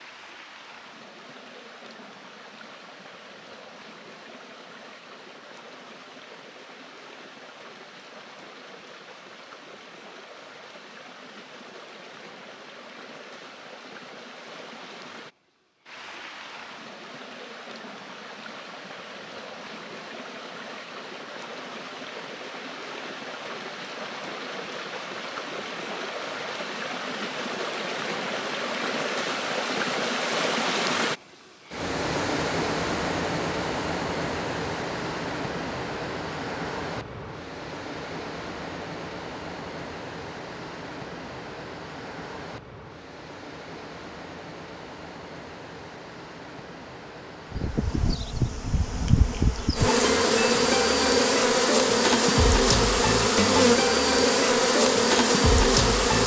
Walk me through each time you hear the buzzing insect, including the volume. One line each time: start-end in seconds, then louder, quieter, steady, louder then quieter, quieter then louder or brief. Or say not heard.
47.5-56.2 louder.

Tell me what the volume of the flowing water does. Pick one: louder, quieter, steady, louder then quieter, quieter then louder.
louder then quieter.